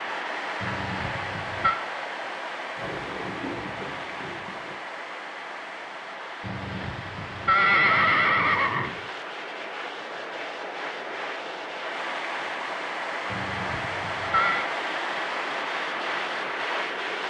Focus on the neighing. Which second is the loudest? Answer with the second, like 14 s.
8 s.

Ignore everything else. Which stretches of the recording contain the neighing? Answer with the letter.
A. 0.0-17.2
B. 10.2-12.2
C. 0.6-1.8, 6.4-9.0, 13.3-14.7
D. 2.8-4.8
C.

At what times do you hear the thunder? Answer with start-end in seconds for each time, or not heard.
2.8-4.8.